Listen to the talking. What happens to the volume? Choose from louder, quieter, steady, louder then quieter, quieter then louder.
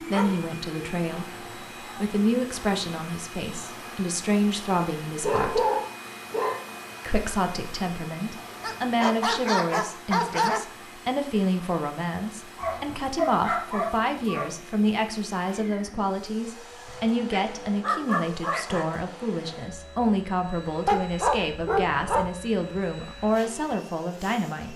steady.